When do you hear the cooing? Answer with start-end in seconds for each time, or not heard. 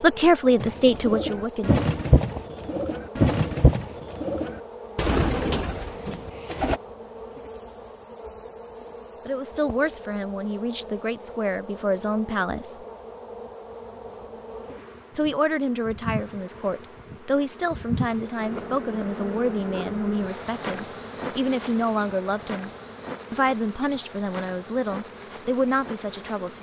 0.6-6.8.